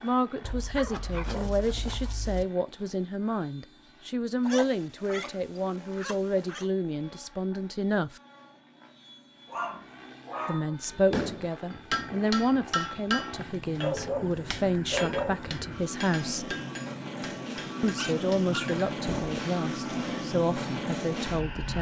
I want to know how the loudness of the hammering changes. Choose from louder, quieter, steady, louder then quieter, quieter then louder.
quieter.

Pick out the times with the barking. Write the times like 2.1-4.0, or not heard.
0.4-2.5, 4.5-6.7, 9.4-10.8, 13.3-15.7, 17.9-19.4.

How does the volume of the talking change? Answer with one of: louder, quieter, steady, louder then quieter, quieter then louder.
steady.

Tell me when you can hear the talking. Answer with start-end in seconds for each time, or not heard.
0.0-8.2, 10.4-16.6, 17.8-21.7.